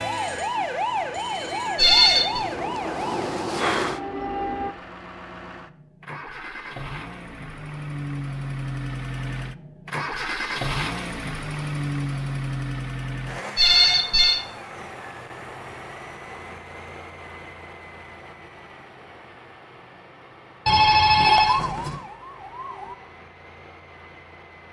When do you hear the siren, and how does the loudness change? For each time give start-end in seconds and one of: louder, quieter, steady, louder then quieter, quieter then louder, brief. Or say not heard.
0.0-4.8 steady
21.2-22.9 brief.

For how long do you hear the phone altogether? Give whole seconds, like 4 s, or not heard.
3 s.